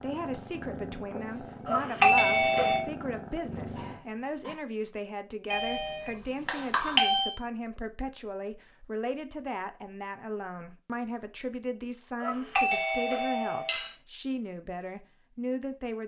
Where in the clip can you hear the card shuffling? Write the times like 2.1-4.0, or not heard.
not heard.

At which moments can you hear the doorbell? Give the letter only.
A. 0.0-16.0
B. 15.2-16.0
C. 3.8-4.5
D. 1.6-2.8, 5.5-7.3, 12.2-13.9
D.